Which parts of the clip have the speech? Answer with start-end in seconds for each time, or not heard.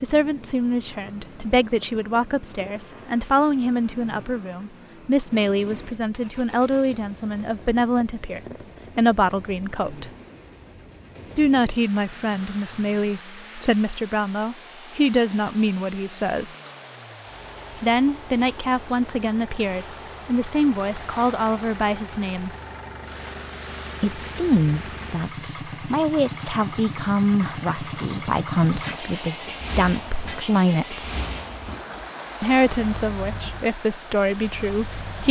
0.0-10.1, 11.3-16.6, 17.8-22.5, 24.0-31.1, 32.4-35.2.